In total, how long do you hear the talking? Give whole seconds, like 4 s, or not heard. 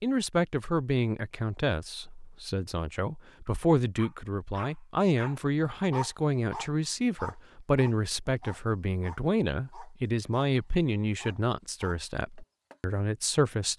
14 s.